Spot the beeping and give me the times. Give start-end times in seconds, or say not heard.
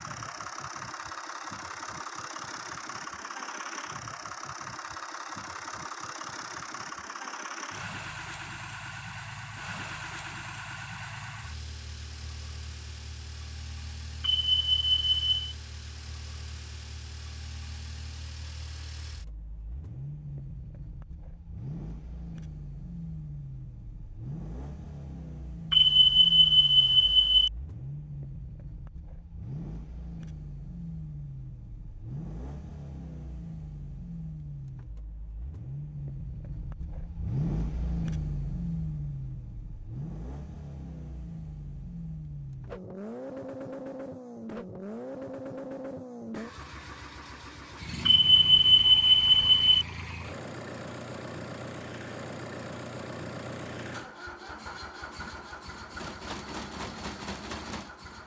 14.2-15.5, 25.7-27.5, 48.0-49.9.